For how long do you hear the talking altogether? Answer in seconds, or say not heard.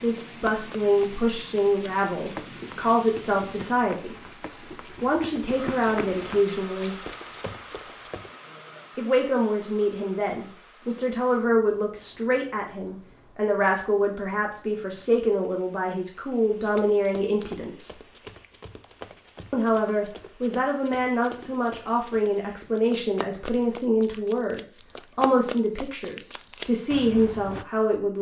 24 s.